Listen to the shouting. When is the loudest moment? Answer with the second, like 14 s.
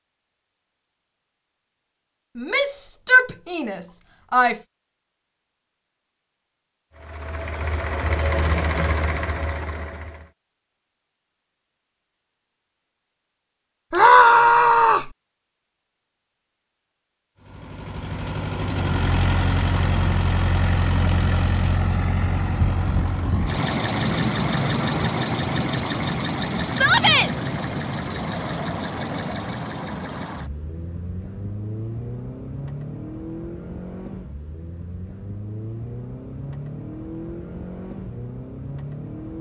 14 s.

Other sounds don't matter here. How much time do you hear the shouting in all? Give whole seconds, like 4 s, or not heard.
4 s.